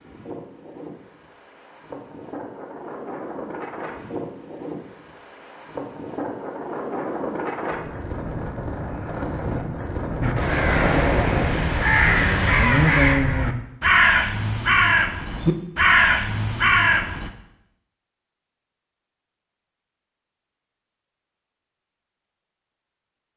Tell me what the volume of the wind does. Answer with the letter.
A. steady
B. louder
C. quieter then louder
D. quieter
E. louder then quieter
B.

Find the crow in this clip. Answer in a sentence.
You can hear the crow from 10.2 to 17.3 s.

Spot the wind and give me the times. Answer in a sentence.
The wind can be heard from 0.0 to 13.2 s.